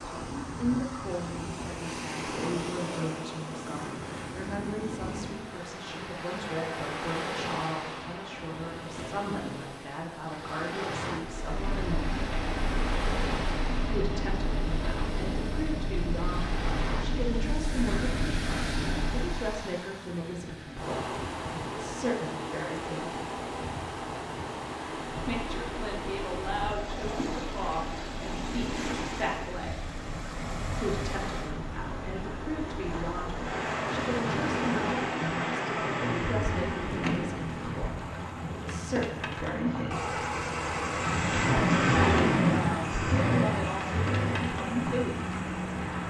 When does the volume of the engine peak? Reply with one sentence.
The loudest moment of the engine is at 42 seconds.